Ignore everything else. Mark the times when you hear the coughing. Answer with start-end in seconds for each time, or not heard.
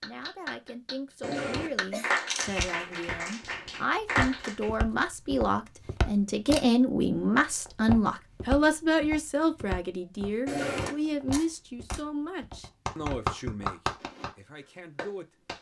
1.2-2.1, 10.4-10.9.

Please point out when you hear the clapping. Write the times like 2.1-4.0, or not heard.
0.0-4.7, 12.6-14.3, 14.9-15.5.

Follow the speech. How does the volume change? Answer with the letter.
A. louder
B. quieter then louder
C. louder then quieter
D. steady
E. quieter
C.